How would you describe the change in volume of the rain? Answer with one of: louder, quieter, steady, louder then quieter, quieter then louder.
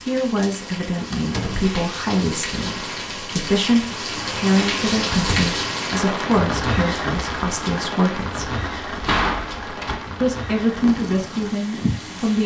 louder then quieter.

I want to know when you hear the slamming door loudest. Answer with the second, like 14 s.
9 s.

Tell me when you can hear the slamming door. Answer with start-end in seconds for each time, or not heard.
1.1-1.8, 5.1-5.5, 8.8-10.0.